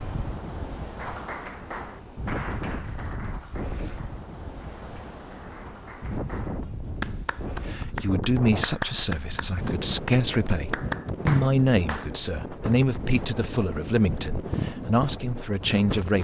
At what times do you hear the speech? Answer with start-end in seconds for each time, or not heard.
7.7-16.1.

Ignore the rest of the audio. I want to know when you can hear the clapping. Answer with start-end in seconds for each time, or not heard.
0.9-12.1.